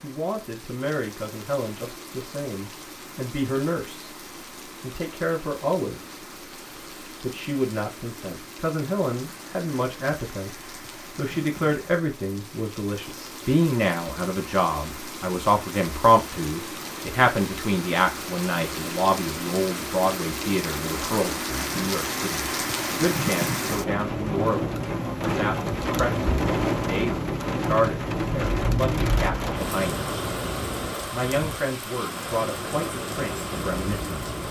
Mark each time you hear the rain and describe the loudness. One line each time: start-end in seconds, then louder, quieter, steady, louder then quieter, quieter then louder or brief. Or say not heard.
0.0-34.4 louder.